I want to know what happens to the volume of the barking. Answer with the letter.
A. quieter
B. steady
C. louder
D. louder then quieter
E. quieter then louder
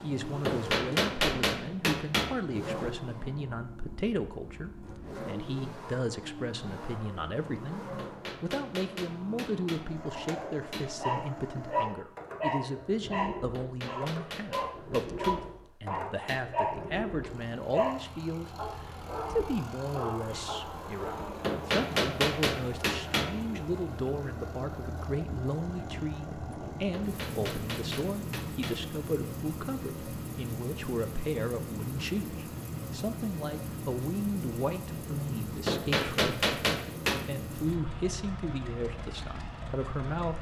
A.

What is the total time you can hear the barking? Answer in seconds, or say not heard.
11 s.